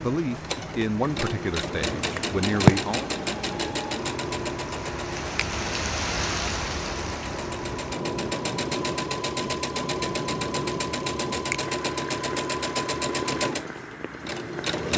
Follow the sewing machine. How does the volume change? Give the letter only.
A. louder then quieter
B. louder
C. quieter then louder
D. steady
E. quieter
D.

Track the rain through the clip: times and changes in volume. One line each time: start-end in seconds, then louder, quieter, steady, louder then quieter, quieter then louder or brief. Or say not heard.
0.0-14.9 louder then quieter.